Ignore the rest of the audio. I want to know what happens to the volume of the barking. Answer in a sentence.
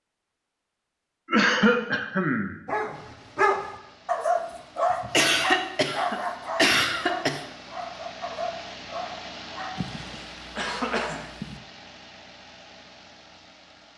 The loudness of the barking goes down.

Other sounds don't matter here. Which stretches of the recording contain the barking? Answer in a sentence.
You can hear the barking from 2.6 to 9.8 s.